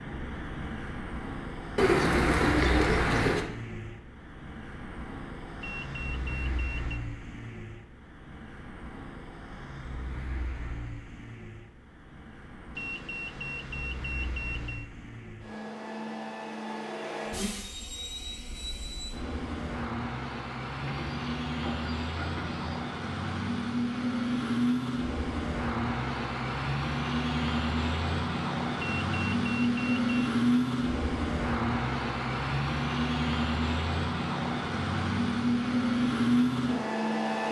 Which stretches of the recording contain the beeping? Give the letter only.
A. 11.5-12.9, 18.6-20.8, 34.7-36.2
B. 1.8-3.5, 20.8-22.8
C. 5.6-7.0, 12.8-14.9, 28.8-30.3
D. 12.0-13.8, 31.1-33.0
C.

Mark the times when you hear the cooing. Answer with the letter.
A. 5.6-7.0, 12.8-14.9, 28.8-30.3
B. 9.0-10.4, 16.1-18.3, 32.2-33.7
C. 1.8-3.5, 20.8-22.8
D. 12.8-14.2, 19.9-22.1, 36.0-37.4
C.